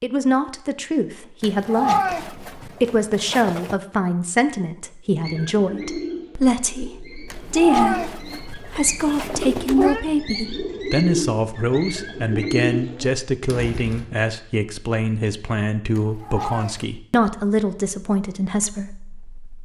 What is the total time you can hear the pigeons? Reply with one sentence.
You can hear the pigeons for 9 seconds altogether.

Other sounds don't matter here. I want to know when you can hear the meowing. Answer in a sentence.
The meowing can be heard from 1.4 to 3.8 s, from 7.3 to 10.1 s and from 15.9 to 16.9 s.